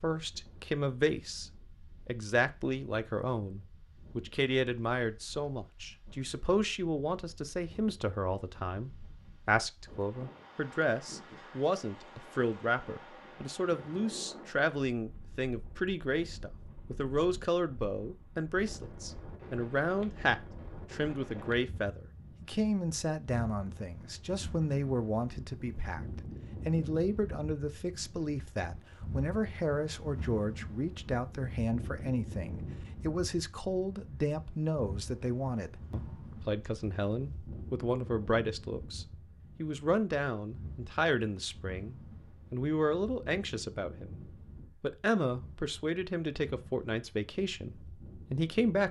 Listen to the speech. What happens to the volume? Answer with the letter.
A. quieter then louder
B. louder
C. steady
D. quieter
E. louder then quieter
C.